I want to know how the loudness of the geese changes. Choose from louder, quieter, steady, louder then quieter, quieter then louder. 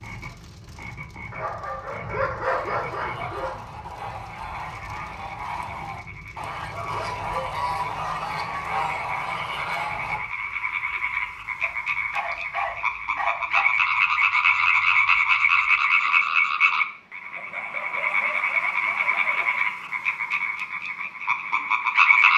louder.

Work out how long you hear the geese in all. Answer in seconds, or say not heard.
8 s.